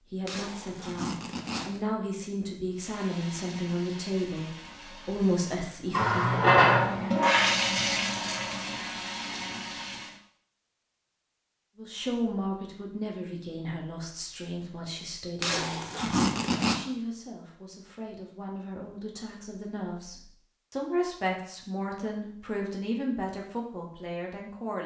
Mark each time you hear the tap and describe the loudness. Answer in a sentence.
The tap can be heard from 2.8 to 10.1 s, getting louder then quieter.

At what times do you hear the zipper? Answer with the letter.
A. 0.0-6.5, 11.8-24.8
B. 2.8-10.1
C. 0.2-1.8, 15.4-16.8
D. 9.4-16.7
C.